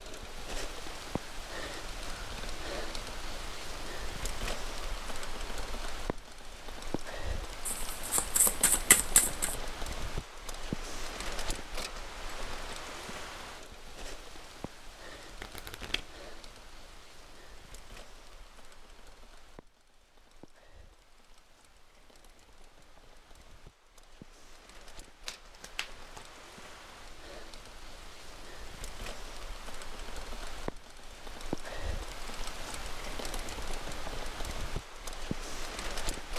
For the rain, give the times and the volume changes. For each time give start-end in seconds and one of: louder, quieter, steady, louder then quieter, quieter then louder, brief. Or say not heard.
0.0-36.3 quieter then louder.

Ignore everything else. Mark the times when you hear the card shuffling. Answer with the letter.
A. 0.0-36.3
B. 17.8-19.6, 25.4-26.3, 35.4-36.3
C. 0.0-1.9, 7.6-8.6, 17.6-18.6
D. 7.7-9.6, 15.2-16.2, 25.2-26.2
D.